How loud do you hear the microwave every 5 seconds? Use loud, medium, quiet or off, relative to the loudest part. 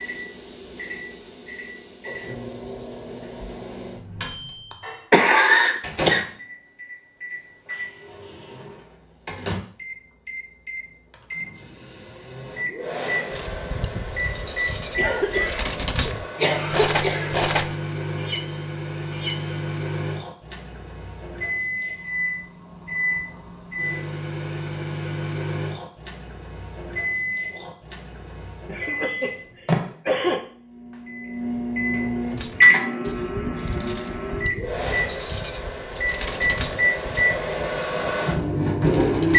quiet, medium, medium, medium, medium, medium, loud, loud.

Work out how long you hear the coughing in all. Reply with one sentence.
The coughing can be heard for 5 seconds in total.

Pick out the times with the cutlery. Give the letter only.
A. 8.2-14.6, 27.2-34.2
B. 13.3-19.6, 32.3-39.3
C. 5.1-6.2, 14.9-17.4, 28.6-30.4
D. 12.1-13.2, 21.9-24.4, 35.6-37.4
B.